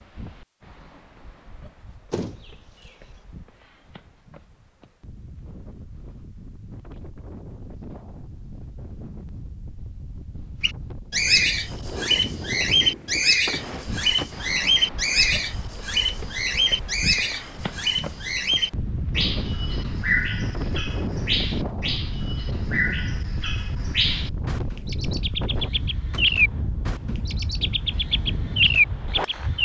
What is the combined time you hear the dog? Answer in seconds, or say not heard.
not heard.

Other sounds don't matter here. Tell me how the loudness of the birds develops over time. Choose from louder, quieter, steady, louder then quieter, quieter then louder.
quieter then louder.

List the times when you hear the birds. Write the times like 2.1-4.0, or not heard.
10.6-29.5.